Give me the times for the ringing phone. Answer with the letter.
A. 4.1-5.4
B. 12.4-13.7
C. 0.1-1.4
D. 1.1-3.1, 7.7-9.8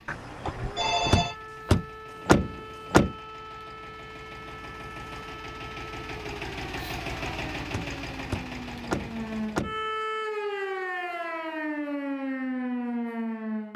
C.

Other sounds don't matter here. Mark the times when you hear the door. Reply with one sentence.
You can hear the door from 1.1 to 3.1 s and from 7.7 to 9.8 s.